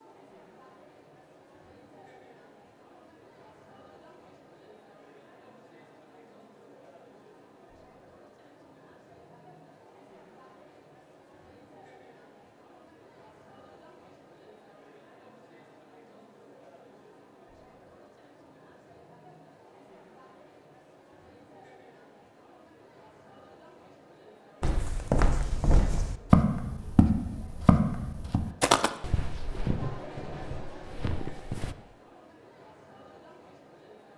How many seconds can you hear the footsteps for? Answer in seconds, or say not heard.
7 s.